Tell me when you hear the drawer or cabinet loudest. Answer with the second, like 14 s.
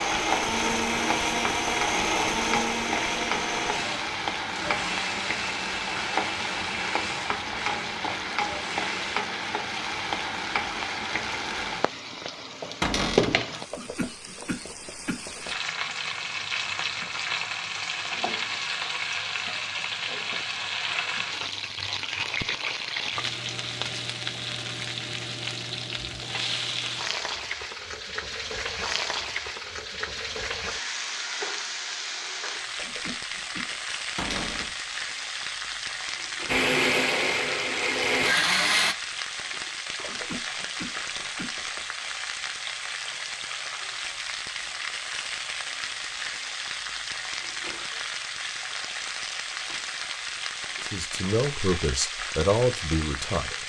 13 s.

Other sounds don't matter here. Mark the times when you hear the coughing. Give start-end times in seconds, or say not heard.
13.7-15.5, 32.8-33.8, 40.0-41.8.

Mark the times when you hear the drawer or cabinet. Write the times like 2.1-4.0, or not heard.
12.8-13.4, 34.1-34.8.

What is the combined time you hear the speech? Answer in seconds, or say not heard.
3 s.